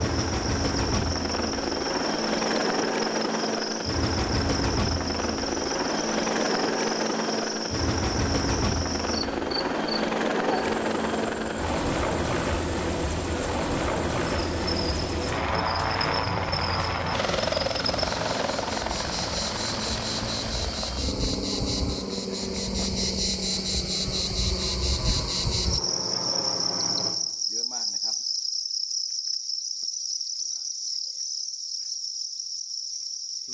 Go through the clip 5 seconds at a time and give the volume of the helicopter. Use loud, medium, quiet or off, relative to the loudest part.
loud, loud, loud, loud, medium, medium, off.